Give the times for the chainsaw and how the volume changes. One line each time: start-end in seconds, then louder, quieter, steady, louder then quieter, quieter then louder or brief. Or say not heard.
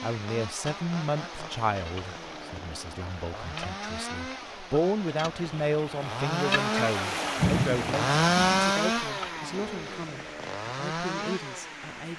0.0-12.1 louder then quieter.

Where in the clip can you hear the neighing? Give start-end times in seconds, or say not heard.
not heard.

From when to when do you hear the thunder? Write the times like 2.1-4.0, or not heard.
7.3-8.7.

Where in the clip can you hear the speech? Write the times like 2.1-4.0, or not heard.
0.0-12.1.